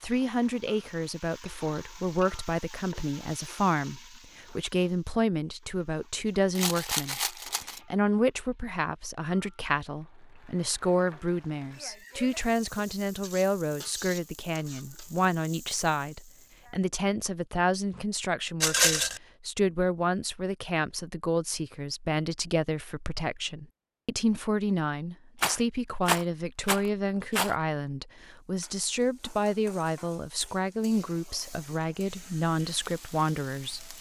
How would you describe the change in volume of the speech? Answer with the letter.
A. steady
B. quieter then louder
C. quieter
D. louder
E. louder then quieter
A.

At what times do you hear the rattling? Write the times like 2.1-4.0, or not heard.
6.5-7.8, 18.6-19.2, 25.4-27.6.